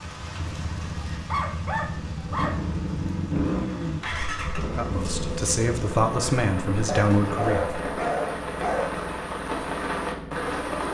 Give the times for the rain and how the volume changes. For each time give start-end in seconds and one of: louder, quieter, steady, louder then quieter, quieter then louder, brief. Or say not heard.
0.0-10.8 louder.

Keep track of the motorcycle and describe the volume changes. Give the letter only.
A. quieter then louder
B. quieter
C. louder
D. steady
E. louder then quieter
E.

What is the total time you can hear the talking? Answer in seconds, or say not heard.
3 s.